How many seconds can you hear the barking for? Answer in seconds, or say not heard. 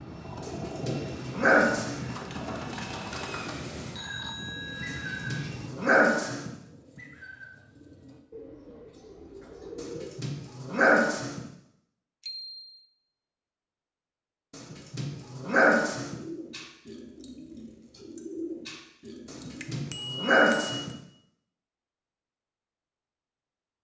8 s.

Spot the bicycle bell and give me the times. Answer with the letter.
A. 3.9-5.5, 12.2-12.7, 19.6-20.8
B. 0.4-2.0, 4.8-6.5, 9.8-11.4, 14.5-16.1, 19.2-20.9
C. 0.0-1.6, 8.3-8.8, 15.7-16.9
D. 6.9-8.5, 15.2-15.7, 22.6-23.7
A.